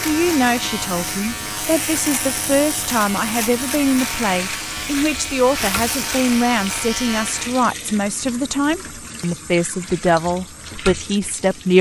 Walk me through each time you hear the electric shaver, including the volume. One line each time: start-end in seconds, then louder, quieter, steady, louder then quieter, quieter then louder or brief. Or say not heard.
0.0-7.7 steady.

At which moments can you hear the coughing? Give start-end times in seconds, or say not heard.
not heard.